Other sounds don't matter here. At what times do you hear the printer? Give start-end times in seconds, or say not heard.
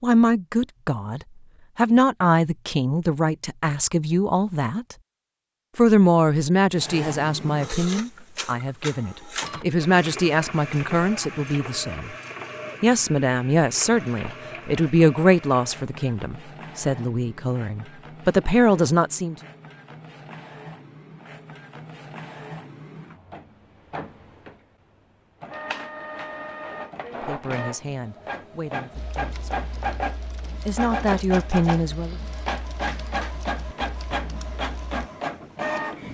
6.7-36.0.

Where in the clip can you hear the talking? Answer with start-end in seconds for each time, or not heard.
0.0-5.0, 5.8-12.2, 12.8-19.4, 27.2-30.1, 30.6-32.1.